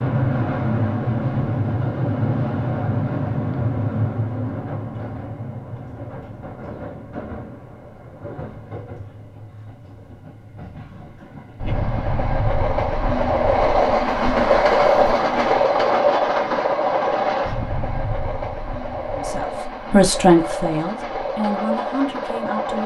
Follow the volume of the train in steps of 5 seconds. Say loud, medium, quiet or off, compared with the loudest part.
loud, quiet, loud, loud, medium.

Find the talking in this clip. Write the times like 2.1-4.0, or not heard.
19.1-22.8.